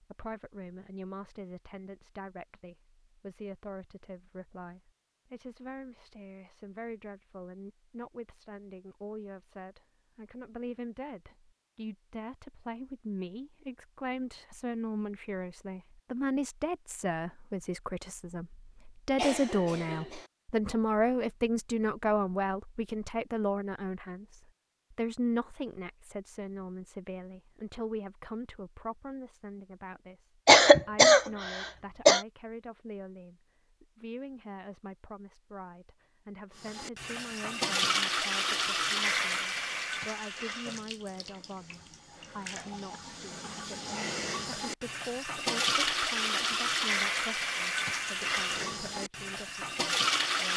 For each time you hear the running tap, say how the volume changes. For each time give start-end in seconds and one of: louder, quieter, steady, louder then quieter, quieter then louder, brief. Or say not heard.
36.5-50.5 quieter then louder.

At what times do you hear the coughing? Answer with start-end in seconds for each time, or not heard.
19.1-20.2, 30.4-32.2.